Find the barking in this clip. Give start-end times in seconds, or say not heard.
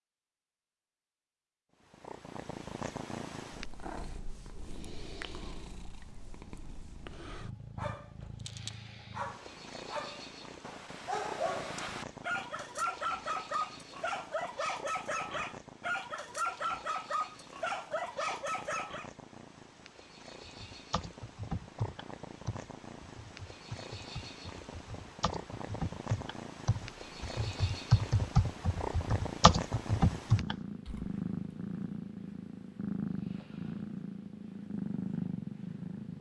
7.8-19.1.